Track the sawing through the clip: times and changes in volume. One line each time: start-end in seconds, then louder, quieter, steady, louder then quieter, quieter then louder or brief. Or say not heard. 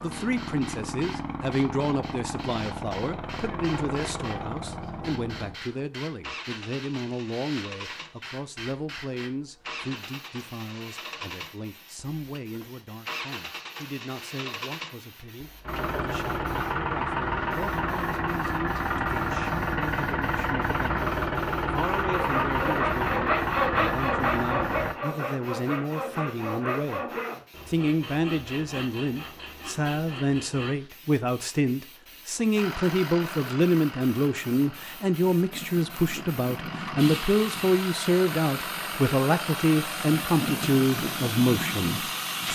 22.1-30.8 quieter.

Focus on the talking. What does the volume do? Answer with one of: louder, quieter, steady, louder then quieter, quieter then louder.
quieter then louder.